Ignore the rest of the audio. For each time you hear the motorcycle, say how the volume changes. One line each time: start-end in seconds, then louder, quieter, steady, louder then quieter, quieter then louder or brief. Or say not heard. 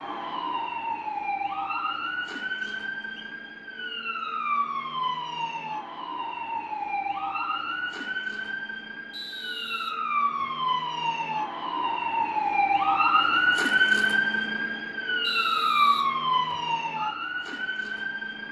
not heard.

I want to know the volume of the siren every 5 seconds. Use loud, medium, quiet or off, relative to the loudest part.
medium, medium, loud, loud.